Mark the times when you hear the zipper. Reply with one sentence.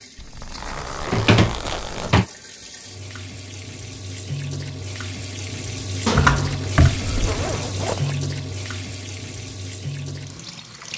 You can hear the zipper from 0.1 to 2.1 s and from 7.2 to 8.2 s.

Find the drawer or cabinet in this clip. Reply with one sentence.
The drawer or cabinet can be heard from 1.1 to 2.2 s and from 6.0 to 7.7 s.